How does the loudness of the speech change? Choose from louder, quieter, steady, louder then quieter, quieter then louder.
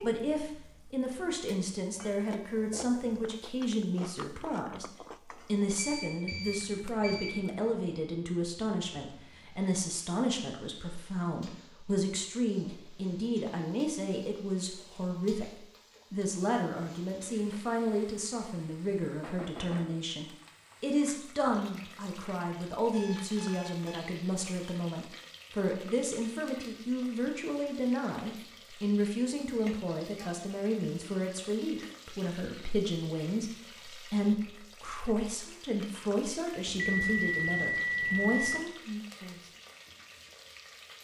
steady.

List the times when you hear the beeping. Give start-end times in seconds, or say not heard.
5.8-7.5, 22.9-24.2, 36.6-38.6.